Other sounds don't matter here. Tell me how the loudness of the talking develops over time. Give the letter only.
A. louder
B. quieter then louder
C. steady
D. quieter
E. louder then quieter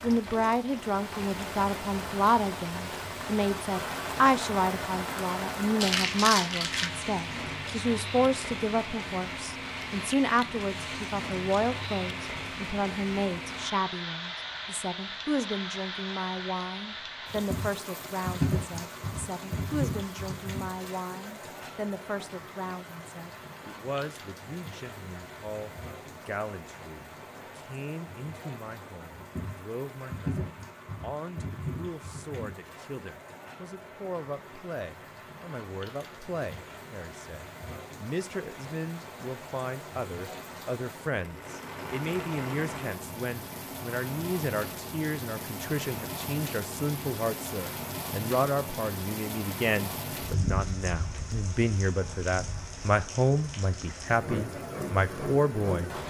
B.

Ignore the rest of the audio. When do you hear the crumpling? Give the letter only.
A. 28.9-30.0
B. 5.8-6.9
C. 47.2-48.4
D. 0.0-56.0
B.